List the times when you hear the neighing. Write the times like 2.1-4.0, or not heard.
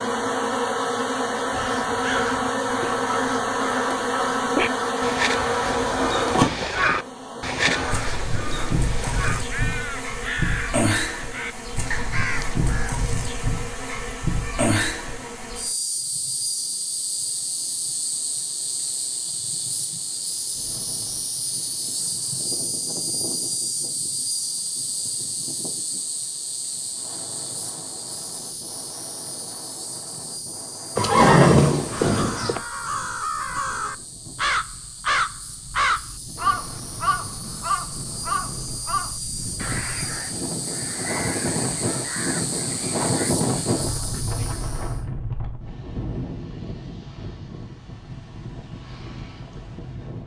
30.9-32.6.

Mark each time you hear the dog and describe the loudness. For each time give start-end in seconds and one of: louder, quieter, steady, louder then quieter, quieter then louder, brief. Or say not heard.
not heard.